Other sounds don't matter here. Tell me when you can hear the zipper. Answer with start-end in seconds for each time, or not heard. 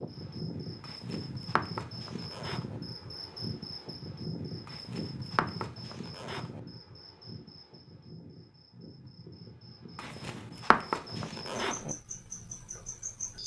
0.8-2.8, 4.7-6.6, 9.9-11.9.